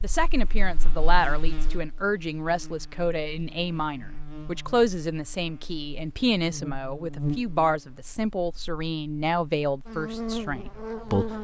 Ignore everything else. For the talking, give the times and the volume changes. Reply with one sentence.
The talking can be heard from 0.0 to 11.3 s, at a steady volume.